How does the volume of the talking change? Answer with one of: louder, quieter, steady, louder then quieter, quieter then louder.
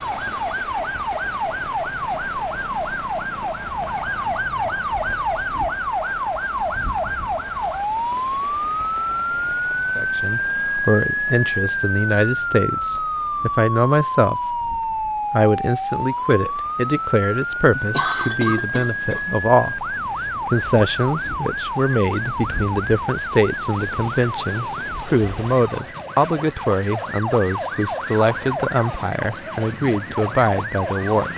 steady.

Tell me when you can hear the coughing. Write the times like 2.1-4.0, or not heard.
17.8-19.2.